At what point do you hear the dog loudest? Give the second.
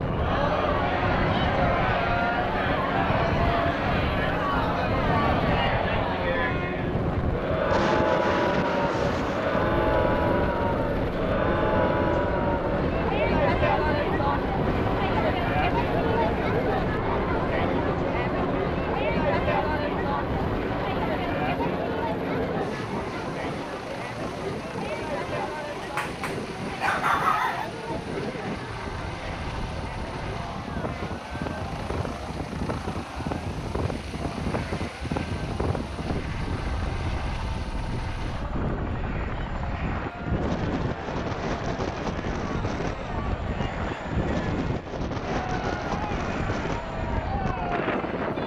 27 s.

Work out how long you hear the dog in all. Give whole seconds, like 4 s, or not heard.
2 s.